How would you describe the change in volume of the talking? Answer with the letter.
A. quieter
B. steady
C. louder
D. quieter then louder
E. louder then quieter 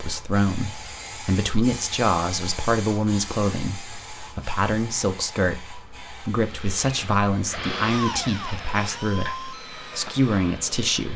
B.